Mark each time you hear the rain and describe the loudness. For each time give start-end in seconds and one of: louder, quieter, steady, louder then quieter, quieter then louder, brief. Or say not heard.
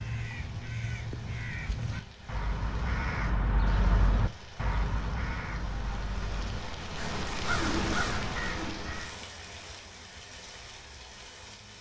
0.0-11.7 louder then quieter.